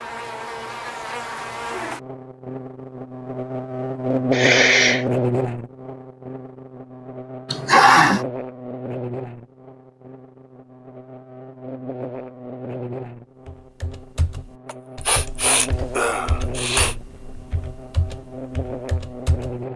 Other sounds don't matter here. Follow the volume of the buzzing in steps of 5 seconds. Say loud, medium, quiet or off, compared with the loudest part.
loud, loud, medium, medium.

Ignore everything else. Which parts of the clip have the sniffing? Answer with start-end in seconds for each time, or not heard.
4.3-5.0, 7.5-8.2, 14.7-16.9.